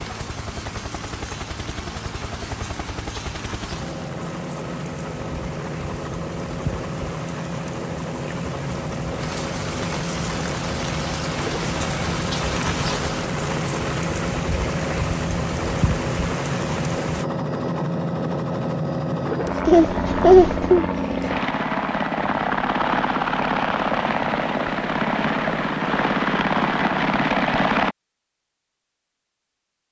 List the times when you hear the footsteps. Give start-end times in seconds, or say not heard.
not heard.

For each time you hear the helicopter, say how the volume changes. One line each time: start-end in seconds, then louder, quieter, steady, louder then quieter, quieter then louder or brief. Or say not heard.
0.0-27.9 louder.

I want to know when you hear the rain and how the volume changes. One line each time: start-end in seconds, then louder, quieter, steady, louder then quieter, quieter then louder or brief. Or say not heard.
0.0-17.2 louder.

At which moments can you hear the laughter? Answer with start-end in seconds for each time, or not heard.
19.6-20.9.